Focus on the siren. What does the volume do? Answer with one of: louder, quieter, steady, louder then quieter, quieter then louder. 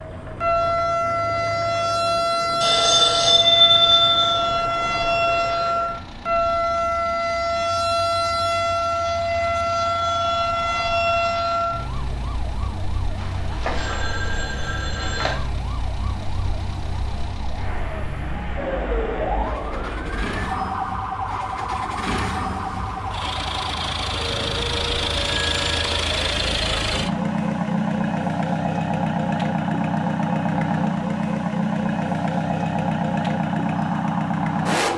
quieter.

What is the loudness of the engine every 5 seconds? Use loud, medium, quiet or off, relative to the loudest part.
quiet, quiet, quiet, quiet, medium, loud, loud.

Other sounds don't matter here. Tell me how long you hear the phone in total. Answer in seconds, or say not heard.
5 s.